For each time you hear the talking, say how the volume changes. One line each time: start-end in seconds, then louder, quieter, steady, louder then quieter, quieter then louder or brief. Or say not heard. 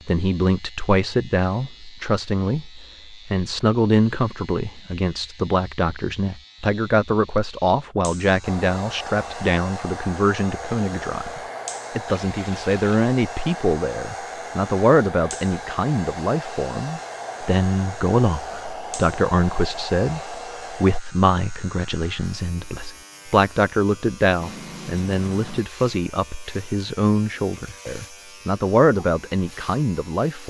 0.1-30.4 steady.